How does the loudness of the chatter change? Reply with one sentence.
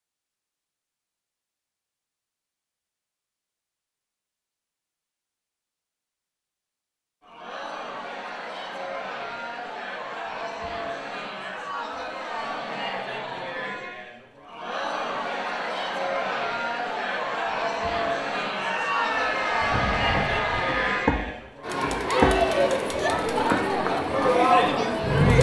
The loudness of the chatter goes up.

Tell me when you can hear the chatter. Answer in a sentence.
The chatter can be heard from 7.2 to 25.3 s.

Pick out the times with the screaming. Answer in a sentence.
The screaming can be heard from 18.5 to 21.1 s.